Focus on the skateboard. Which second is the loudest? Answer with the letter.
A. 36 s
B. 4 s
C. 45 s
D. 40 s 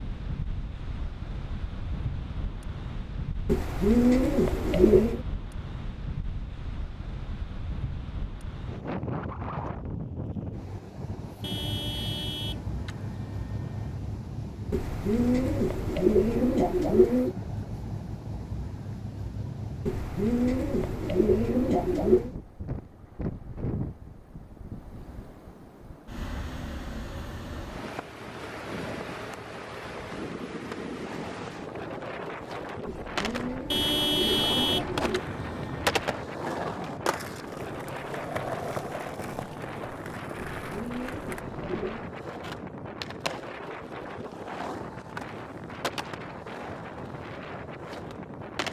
A.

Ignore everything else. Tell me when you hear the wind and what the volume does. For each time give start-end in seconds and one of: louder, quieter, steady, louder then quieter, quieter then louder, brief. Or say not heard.
0.0-48.6 steady.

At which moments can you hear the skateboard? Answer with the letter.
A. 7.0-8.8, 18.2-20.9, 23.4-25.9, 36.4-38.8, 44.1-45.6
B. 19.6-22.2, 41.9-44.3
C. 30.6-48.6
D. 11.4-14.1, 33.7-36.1
C.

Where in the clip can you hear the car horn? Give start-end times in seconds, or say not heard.
11.4-14.1, 33.7-36.1.